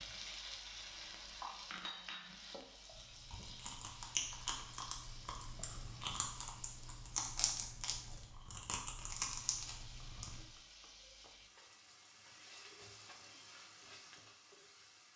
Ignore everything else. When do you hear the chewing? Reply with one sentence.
The chewing can be heard from 3.0 to 10.4 s.